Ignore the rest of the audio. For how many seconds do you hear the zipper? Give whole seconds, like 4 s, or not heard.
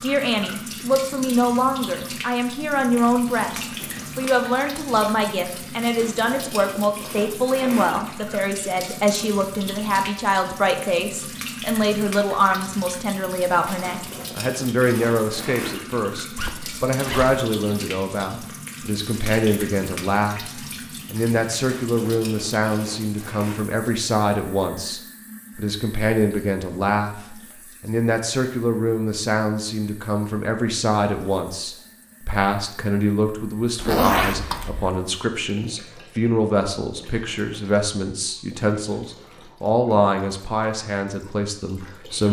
3 s.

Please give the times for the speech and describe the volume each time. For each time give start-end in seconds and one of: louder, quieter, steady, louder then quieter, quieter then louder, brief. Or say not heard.
0.0-42.2 steady.